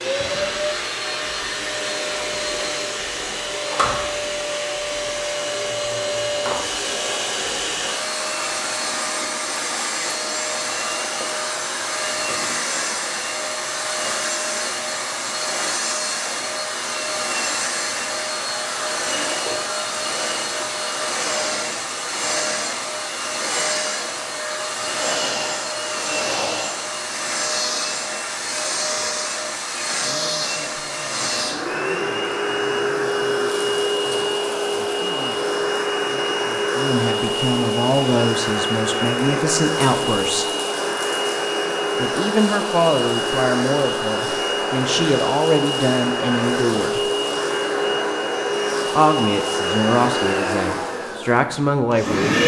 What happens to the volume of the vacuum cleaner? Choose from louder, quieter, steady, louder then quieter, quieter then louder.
steady.